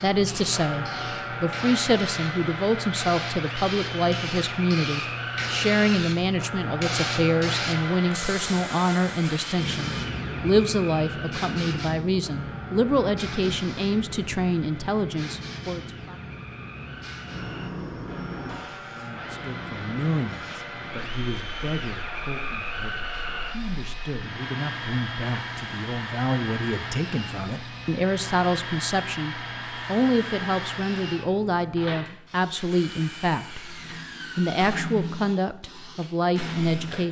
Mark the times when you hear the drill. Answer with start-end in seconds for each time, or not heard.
0.0-37.0.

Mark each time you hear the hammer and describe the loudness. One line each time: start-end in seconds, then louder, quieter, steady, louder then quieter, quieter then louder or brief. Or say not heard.
not heard.